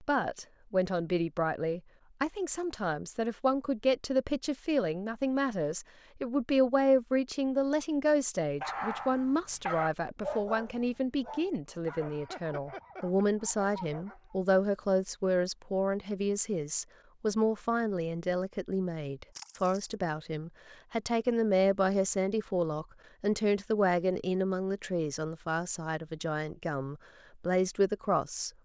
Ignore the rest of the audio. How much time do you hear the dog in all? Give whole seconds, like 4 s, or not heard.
6 s.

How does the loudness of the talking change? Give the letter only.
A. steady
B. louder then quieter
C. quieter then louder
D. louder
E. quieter
A.